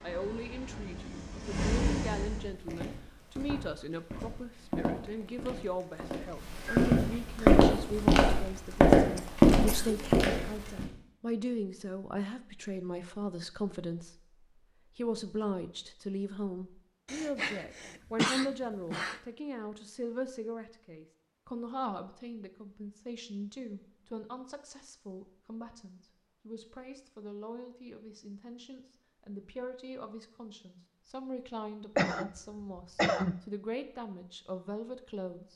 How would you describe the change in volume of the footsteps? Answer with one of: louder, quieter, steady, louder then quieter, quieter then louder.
louder.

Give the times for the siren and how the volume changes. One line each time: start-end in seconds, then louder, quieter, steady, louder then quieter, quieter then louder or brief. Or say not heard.
not heard.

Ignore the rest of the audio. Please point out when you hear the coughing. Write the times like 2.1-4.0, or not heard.
9.2-10.2, 17.1-19.2, 31.9-33.4.